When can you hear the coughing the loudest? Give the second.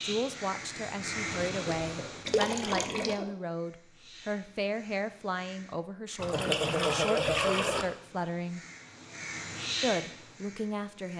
7 s.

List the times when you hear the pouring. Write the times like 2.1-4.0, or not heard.
2.2-3.2, 6.2-7.8.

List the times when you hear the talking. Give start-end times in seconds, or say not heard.
0.0-8.6, 9.8-11.1.